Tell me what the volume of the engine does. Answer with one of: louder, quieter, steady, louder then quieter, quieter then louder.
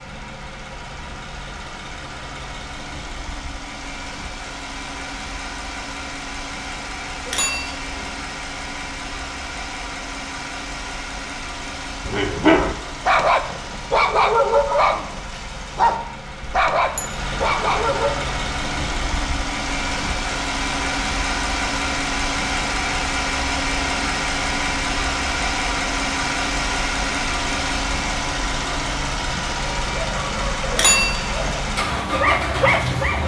louder.